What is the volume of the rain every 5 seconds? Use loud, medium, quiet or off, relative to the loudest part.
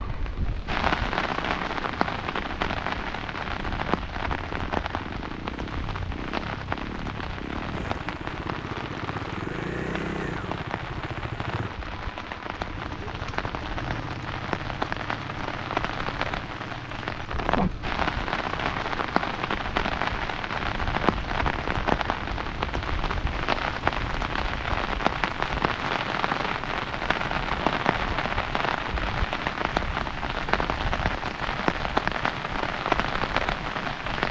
loud, medium, medium, loud, loud, loud, loud.